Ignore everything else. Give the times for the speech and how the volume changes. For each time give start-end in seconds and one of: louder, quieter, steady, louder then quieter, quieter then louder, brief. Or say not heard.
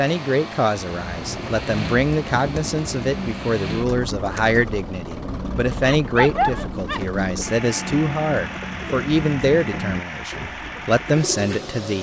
0.0-11.9 steady.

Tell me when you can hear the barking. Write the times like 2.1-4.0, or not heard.
5.8-7.0.